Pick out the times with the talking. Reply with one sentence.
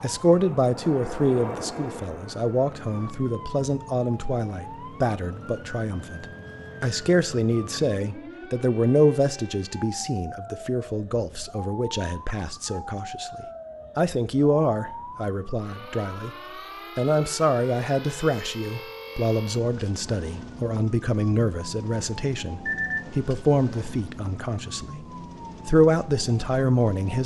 The talking can be heard from 0.0 to 16.3 s, from 16.9 to 25.1 s and from 25.6 to 27.2 s.